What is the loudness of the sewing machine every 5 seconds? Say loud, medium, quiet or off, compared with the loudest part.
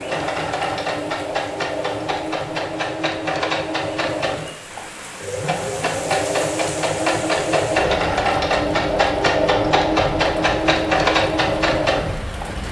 medium, loud, loud.